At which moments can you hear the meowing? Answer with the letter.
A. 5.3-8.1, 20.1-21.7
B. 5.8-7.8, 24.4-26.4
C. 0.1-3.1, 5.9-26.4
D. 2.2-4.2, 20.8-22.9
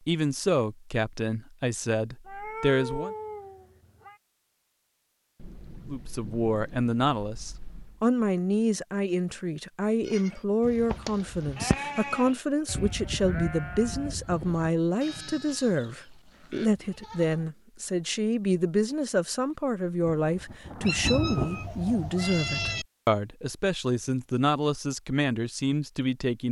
D.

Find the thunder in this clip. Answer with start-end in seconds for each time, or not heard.
5.3-8.1, 20.1-21.7.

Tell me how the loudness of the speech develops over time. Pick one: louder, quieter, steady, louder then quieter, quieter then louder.
steady.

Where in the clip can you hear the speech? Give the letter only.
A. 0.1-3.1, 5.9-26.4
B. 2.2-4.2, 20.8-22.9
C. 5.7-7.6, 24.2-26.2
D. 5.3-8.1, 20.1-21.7
A.